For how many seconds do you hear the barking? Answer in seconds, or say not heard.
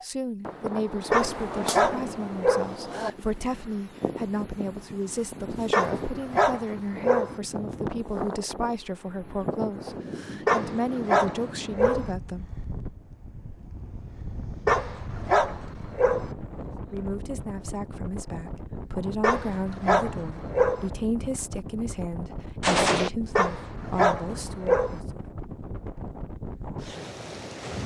10 s.